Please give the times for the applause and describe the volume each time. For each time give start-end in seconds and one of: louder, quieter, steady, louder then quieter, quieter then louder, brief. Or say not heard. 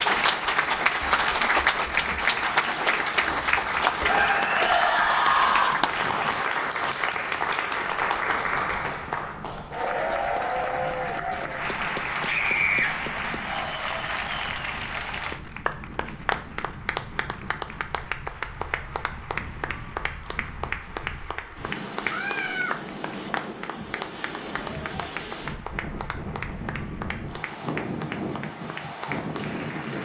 0.0-30.0 quieter.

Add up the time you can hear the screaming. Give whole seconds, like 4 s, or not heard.
3 s.